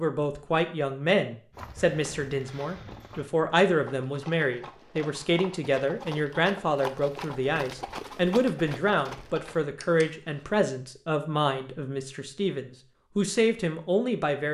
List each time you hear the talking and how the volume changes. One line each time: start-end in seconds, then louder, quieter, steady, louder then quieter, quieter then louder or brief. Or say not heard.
0.0-14.4 steady.